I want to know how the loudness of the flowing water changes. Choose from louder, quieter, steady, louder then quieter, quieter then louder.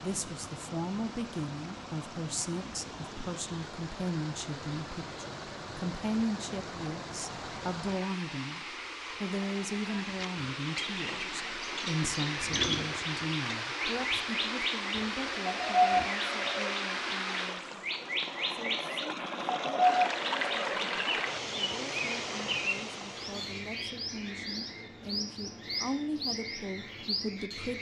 louder.